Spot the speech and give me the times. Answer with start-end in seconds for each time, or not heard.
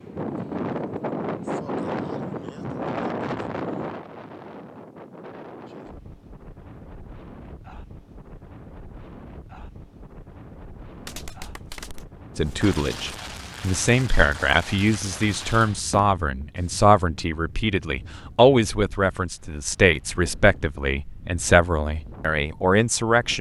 12.3-23.3.